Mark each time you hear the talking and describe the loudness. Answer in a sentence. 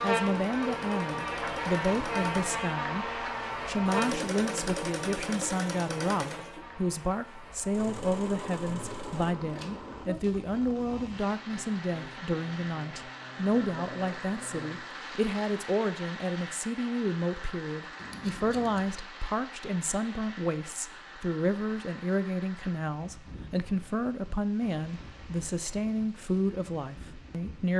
You can hear the talking from 0.0 to 27.7 s, at a steady volume.